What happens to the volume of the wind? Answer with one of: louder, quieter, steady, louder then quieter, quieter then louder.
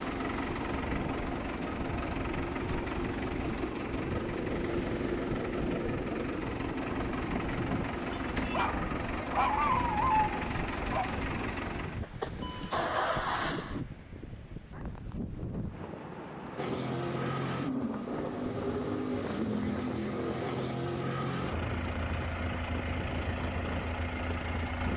steady.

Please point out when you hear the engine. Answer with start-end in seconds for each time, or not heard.
0.0-13.8, 16.6-24.9.